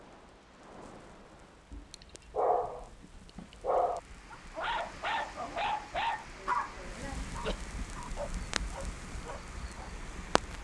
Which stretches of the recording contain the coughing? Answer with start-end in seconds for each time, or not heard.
6.3-7.6.